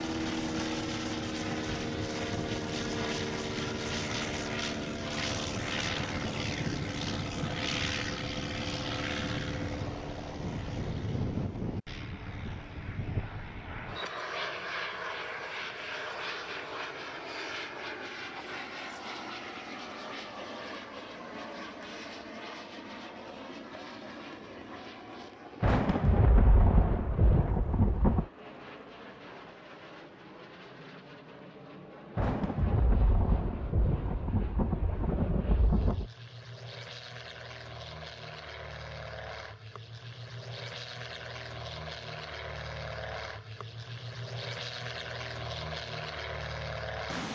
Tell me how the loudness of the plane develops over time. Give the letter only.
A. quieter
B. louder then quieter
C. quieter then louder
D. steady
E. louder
C.